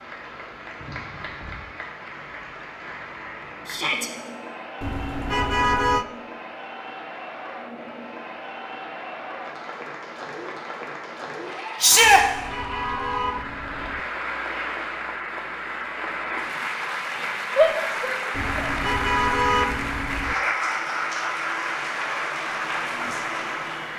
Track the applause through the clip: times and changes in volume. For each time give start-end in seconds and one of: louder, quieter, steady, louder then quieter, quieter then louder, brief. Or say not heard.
0.0-23.9 louder.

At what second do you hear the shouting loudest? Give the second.
12 s.